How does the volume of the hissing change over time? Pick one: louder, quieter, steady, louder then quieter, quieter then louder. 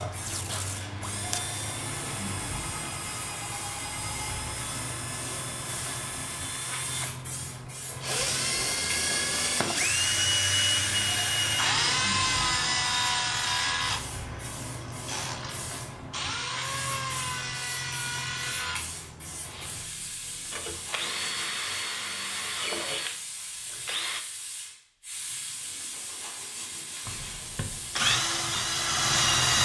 steady.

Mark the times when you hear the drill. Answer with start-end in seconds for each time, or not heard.
0.0-24.2, 27.1-29.6.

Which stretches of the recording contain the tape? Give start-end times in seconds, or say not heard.
0.2-1.5.